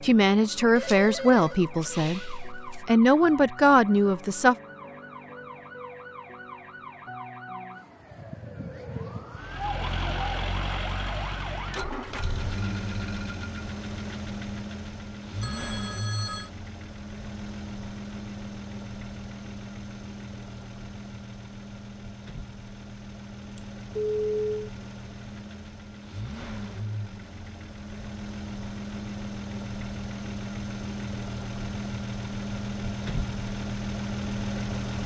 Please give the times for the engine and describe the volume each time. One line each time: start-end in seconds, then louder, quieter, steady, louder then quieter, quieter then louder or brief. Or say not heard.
9.4-35.0 quieter then louder.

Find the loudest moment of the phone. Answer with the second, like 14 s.
24 s.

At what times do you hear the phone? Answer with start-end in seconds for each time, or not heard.
0.8-2.2, 15.4-16.5, 23.6-24.6.